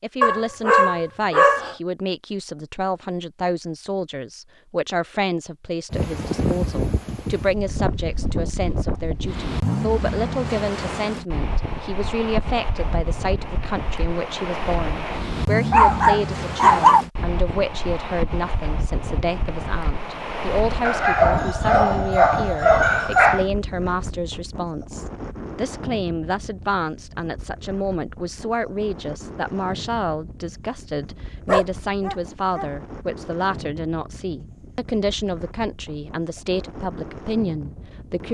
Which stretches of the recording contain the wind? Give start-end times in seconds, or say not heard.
5.9-38.2.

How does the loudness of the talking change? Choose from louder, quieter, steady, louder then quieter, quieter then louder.
steady.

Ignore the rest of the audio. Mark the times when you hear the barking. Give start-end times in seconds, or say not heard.
0.2-1.8, 15.7-17.1, 20.9-23.4, 31.4-32.6.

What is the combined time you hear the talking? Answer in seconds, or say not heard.
38 s.